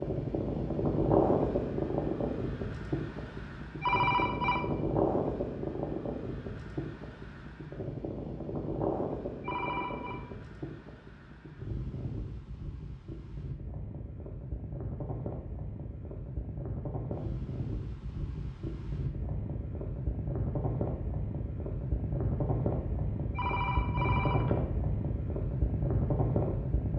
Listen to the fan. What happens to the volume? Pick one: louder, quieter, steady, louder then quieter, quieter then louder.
quieter then louder.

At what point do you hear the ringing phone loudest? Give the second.
4 s.